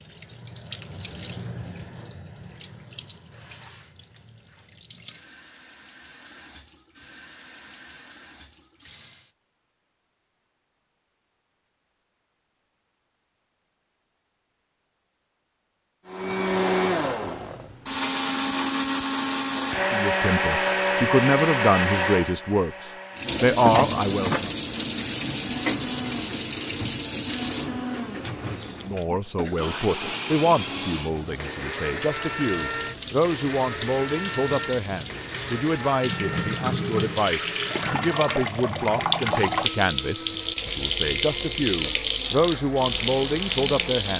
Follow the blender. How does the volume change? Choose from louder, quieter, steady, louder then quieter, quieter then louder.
quieter.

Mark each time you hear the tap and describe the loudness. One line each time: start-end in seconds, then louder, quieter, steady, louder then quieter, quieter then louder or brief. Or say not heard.
0.0-9.3 quieter
23.1-44.1 quieter then louder.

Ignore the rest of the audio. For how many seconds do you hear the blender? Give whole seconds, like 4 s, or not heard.
28 s.